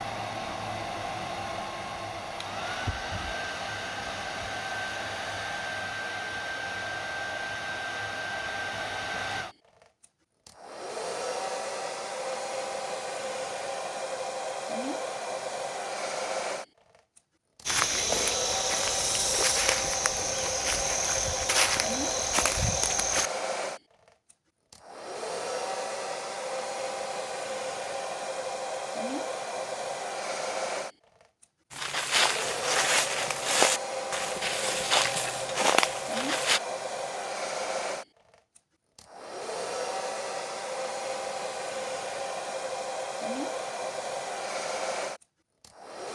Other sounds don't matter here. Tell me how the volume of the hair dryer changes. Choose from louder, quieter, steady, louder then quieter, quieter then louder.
steady.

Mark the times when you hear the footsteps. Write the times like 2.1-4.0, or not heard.
17.6-23.3, 31.7-36.6.